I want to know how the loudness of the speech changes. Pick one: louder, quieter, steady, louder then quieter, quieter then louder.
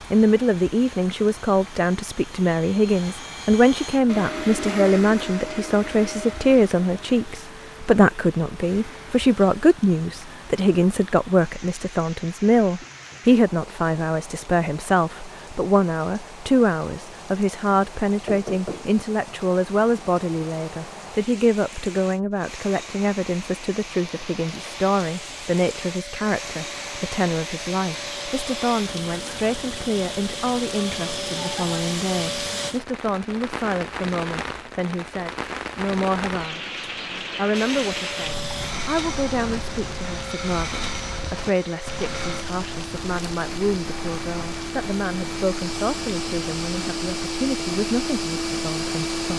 quieter.